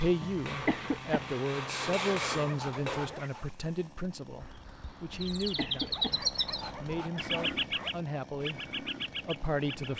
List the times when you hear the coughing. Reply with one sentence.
The coughing can be heard from 0.2 to 1.4 s and from 5.1 to 6.2 s.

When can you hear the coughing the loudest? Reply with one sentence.
The loudest moment of the coughing is at 1 second.